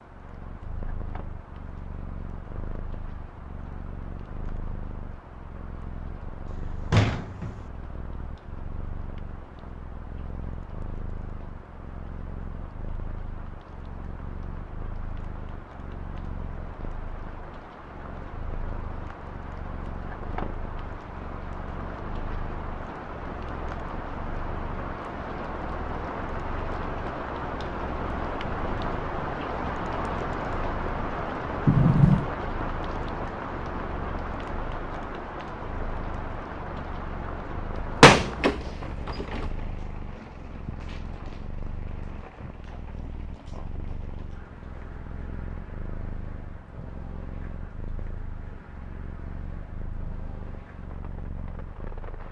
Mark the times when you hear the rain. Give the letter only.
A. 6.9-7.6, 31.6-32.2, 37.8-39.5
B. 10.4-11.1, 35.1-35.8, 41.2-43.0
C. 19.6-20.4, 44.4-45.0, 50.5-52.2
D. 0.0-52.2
D.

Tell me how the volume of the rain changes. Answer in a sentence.
The volume of the rain goes up, then down.